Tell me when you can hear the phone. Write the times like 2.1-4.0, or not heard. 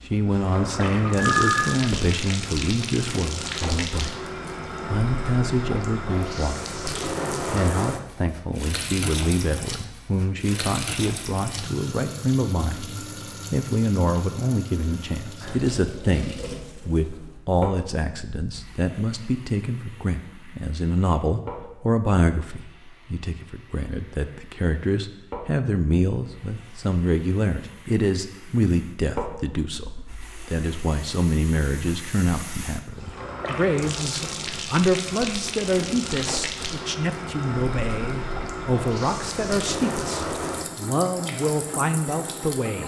1.1-2.0.